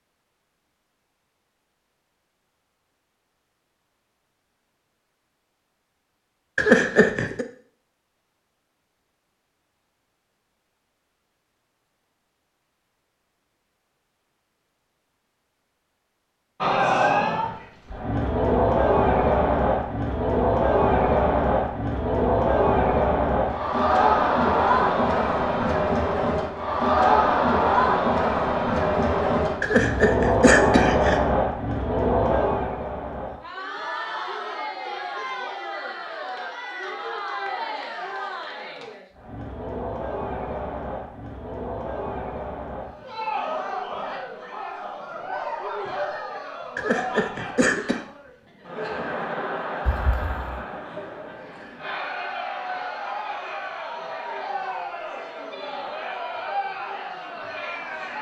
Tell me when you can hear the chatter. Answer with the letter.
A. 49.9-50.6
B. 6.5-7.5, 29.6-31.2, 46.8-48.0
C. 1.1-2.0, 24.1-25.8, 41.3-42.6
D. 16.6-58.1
D.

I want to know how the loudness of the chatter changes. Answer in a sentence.
The loudness of the chatter goes down.